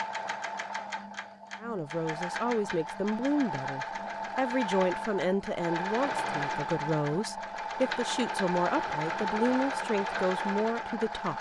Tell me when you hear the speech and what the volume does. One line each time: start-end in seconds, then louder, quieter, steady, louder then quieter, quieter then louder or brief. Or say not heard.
1.6-11.3 steady.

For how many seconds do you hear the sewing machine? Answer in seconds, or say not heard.
11 s.